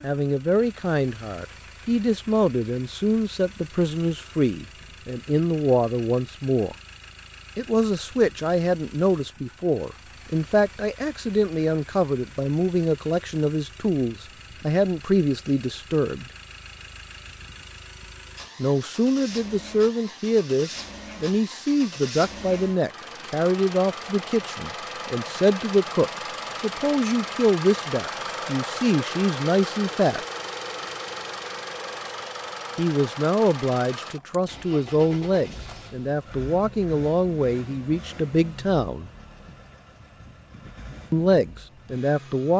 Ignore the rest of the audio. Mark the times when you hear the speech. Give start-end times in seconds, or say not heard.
0.0-6.8, 7.5-16.2, 18.6-30.2, 32.8-39.1, 41.1-42.5.